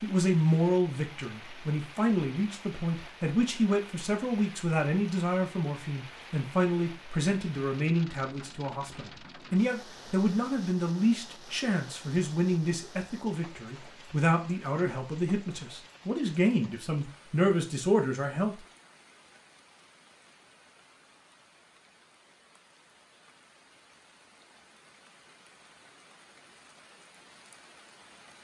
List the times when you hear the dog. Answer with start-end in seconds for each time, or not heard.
not heard.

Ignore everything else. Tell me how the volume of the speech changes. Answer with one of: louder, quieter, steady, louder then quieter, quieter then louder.
steady.